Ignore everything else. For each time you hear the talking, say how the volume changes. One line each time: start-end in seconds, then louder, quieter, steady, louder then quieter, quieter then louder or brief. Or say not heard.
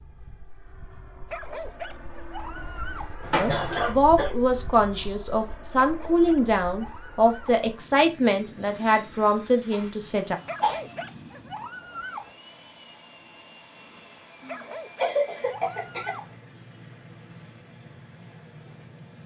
3.4-10.3 steady.